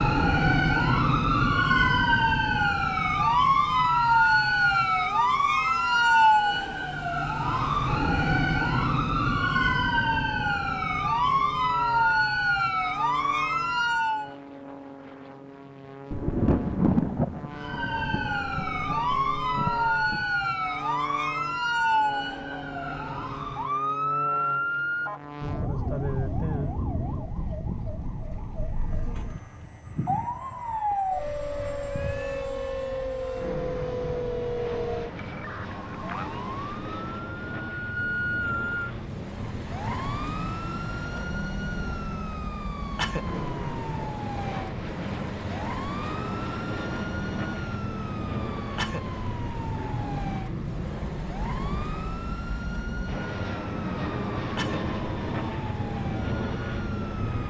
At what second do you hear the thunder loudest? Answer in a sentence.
The loudest moment of the thunder is at 17 seconds.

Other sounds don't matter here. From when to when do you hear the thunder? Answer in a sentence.
The thunder can be heard from 16.1 to 20.2 s.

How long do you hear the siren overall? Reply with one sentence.
You can hear the siren for 54 seconds altogether.